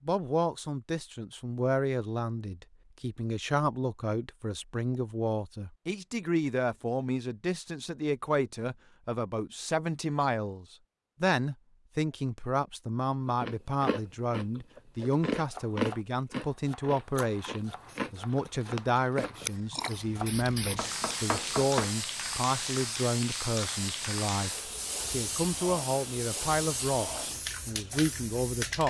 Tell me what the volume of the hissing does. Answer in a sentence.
The loudness of the hissing stays about the same.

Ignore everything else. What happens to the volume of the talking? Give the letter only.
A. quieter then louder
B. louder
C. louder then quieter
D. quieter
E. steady
E.